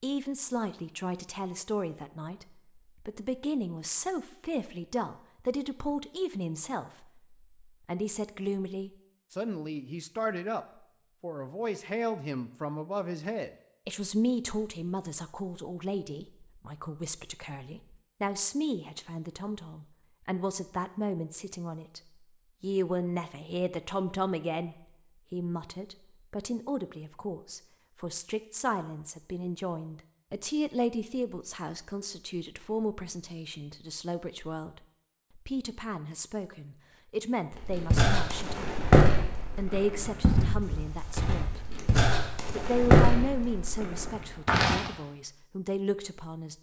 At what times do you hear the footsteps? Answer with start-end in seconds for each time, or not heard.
37.5-44.8.